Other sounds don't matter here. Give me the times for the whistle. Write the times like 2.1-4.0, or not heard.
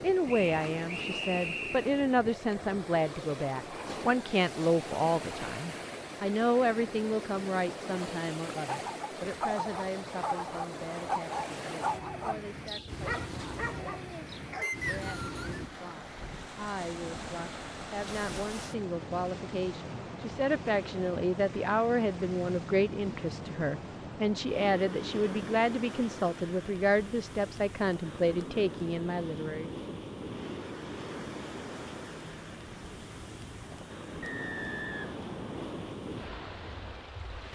0.2-1.9, 14.6-15.6, 34.2-36.0.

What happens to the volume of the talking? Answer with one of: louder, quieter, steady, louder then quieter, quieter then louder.
quieter then louder.